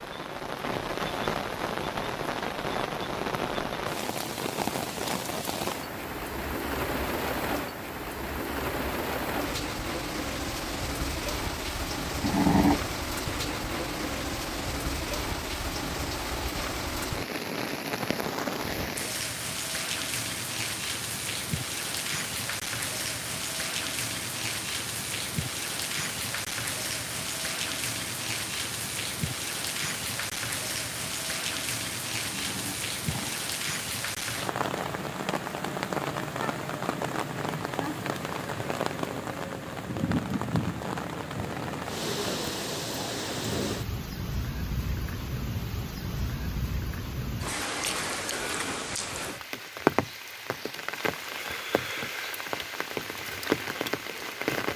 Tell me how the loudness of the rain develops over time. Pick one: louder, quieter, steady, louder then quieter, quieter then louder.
steady.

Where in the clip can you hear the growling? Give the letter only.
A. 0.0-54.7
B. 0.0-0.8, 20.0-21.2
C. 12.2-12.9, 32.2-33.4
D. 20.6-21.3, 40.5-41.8
C.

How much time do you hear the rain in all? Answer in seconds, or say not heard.
55 s.